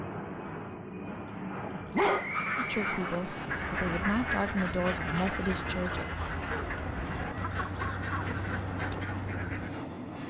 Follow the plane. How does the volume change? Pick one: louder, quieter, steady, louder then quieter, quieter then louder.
steady.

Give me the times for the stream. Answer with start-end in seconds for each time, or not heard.
not heard.